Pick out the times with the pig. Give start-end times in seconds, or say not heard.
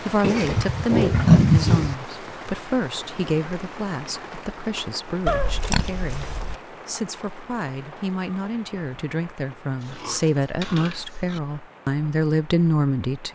0.2-1.9, 5.2-6.5, 9.8-11.6.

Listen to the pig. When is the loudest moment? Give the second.
1 s.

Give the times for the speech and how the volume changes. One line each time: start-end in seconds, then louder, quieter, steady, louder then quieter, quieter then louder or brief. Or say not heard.
0.0-13.2 quieter then louder.